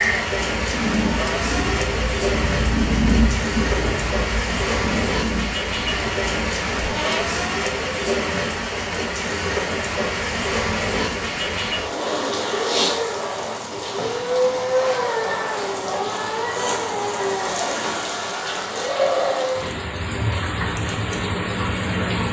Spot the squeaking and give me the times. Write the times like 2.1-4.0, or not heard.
6.8-7.3.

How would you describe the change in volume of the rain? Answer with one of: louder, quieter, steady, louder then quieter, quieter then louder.
steady.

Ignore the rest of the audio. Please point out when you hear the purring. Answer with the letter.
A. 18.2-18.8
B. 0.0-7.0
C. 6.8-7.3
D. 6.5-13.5
B.